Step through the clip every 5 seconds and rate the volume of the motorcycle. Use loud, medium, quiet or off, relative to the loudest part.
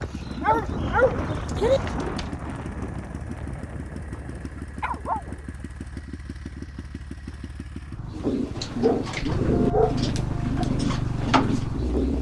medium, medium, loud.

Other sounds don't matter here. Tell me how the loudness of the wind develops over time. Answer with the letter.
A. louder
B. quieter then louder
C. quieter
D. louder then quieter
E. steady
C.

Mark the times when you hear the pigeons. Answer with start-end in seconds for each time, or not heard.
0.0-2.3, 8.1-12.1.